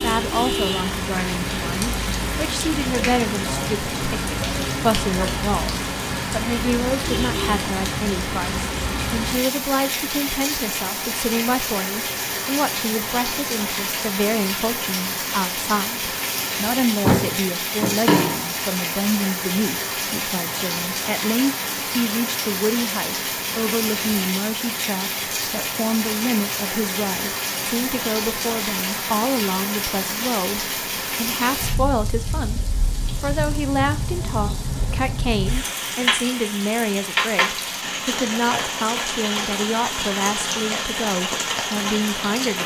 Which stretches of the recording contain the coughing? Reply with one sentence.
You can't hear the coughing here.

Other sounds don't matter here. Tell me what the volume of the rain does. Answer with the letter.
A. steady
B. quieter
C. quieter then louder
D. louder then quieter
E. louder
A.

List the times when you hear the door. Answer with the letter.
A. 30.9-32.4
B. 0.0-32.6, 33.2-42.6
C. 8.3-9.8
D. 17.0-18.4
D.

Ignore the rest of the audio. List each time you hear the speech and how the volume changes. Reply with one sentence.
You can hear the speech from 0.0 to 32.6 s, at a steady volume; and from 33.2 to 42.6 s, at a steady volume.